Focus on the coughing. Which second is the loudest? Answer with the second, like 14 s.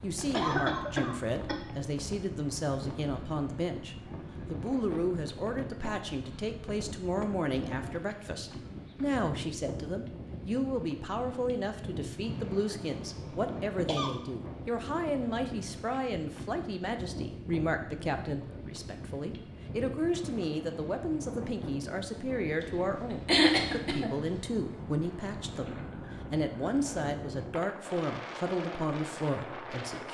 23 s.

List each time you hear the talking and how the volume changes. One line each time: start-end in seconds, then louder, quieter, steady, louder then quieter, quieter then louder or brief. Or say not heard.
0.0-30.1 steady.